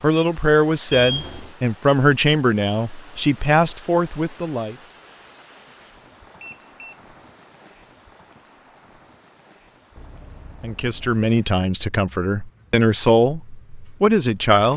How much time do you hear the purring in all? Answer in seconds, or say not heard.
not heard.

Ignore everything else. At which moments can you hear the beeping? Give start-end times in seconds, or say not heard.
0.9-1.6, 6.4-7.0, 9.9-11.2.